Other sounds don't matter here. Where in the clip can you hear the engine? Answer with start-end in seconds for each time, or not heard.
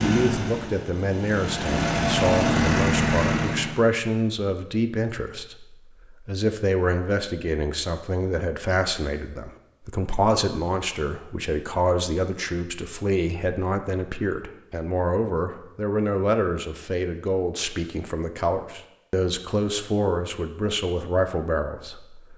0.0-3.8.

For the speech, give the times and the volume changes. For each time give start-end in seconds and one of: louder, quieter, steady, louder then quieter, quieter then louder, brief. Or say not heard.
0.0-22.3 steady.